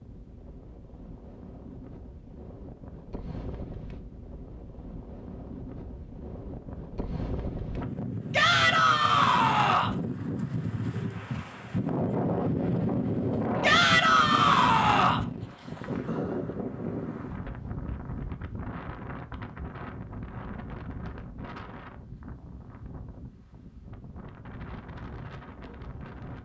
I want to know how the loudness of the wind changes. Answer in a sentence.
The loudness of the wind goes up, then down.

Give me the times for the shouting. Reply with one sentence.
The shouting can be heard from 8.3 to 9.9 s and from 13.6 to 15.2 s.